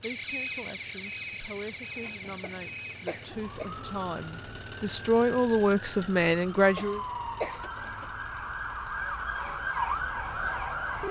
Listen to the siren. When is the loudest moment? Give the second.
10 s.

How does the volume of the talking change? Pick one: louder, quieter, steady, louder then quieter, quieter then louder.
louder.